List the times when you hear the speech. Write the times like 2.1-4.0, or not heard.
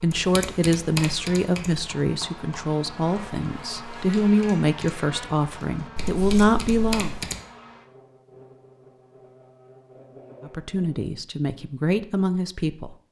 0.0-7.1, 10.4-12.9.